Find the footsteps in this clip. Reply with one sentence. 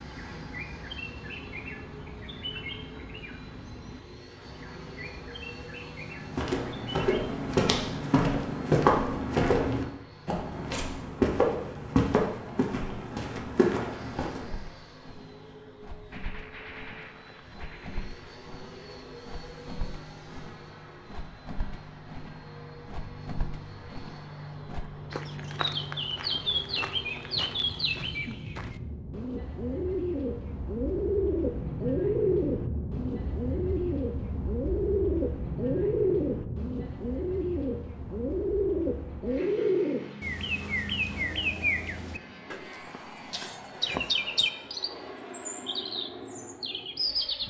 You can hear the footsteps from 6.2 to 14.5 s.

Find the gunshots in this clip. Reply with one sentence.
You can hear the gunshots from 16.1 to 18.2 s.